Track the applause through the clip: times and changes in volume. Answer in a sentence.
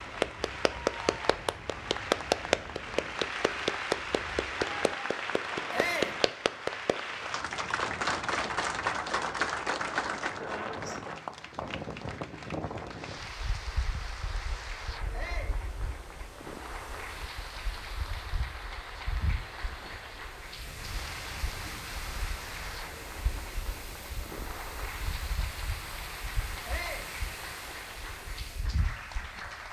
The applause can be heard from 0.0 to 29.6 s, getting quieter.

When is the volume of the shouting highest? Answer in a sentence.
The volume of the shouting peaks at 6 seconds.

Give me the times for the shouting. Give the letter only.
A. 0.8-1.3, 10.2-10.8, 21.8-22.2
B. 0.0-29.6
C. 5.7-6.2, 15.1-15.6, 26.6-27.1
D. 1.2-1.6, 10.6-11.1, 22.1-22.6
C.